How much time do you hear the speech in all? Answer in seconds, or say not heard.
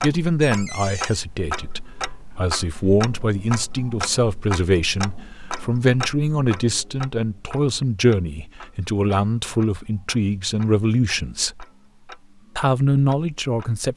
13 s.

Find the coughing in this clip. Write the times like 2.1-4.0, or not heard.
not heard.